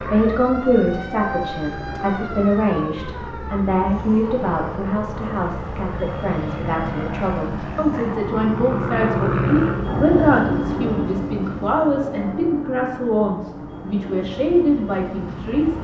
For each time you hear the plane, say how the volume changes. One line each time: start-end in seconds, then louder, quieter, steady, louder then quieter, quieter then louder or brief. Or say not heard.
0.0-15.7 louder then quieter.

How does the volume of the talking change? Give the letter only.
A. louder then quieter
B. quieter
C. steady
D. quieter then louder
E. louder
C.